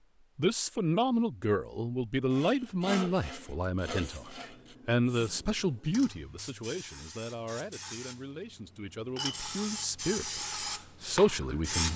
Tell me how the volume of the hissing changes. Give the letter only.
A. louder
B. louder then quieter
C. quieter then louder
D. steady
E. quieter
A.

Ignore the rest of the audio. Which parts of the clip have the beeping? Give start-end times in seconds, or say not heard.
not heard.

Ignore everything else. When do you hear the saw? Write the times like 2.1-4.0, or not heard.
2.3-4.8.